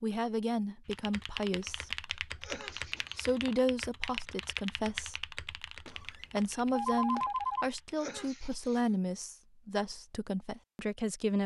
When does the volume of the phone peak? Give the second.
7 s.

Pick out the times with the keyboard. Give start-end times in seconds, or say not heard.
0.8-8.0.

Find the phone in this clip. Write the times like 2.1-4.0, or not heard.
3.0-3.7, 5.8-7.7.